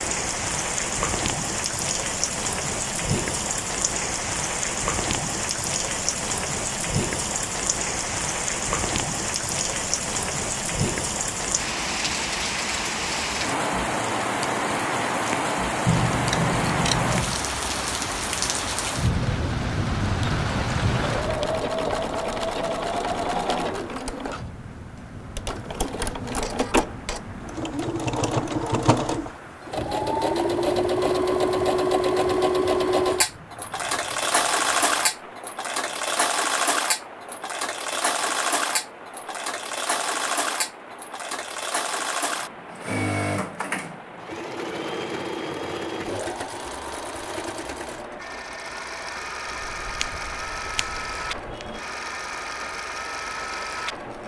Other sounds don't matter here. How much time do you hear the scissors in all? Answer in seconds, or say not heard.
4 s.